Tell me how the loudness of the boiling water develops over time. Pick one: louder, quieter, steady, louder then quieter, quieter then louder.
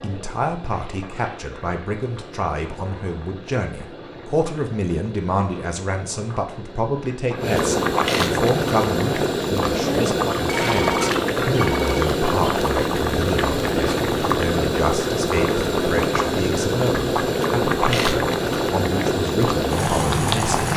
louder.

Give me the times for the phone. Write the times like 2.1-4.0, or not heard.
10.4-12.1.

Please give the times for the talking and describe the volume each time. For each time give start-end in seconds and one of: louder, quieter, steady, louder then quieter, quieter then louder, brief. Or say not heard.
0.0-20.7 steady.